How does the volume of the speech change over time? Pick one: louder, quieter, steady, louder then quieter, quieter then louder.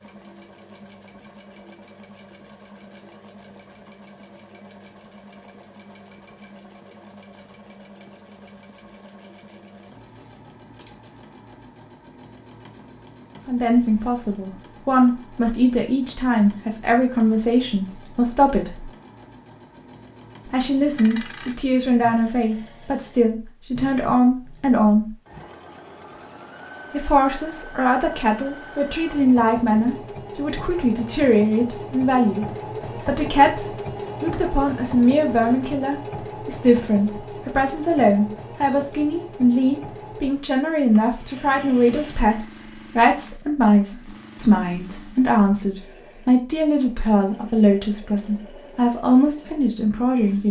steady.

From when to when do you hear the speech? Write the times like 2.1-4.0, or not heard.
13.4-18.9, 20.4-25.1, 26.9-50.4.